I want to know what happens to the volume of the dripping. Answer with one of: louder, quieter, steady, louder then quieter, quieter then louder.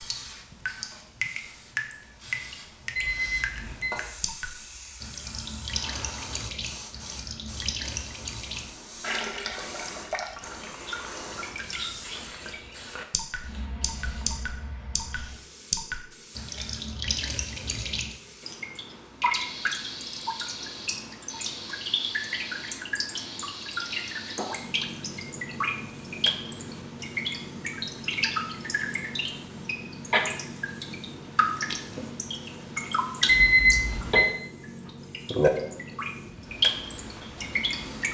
louder.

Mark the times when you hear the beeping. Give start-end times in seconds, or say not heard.
3.0-3.9, 33.2-34.2.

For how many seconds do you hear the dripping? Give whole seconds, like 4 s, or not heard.
38 s.